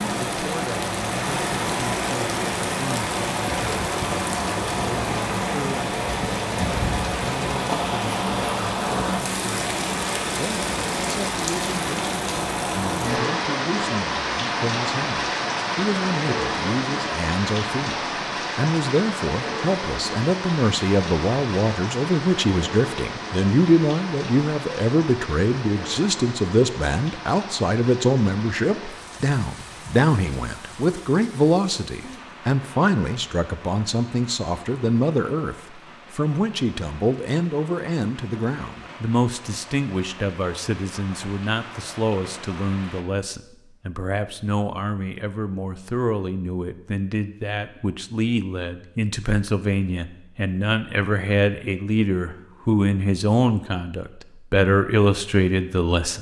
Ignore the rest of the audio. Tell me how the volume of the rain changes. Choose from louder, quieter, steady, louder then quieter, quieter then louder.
quieter.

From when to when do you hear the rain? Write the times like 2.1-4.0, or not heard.
0.0-43.0.